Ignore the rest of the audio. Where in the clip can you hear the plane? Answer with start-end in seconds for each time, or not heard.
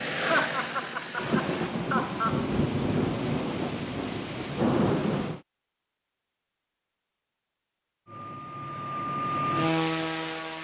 0.0-1.8, 8.1-10.5.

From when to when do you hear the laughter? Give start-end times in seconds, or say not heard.
0.1-2.5.